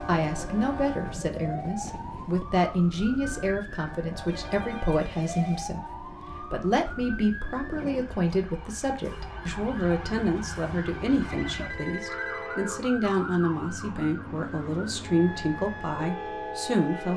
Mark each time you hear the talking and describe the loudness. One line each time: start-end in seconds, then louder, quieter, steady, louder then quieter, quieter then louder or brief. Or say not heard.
0.1-17.1 steady.